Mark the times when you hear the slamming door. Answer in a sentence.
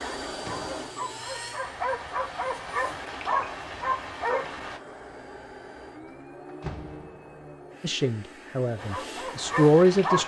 The slamming door can be heard from 0.2 to 0.8 s and from 6.5 to 7.4 s.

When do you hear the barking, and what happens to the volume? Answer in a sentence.
You can hear the barking from 0.0 to 4.8 s, getting louder; and briefly from 8.8 to 10.2 s.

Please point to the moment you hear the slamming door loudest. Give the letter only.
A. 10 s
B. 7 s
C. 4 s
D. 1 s
B.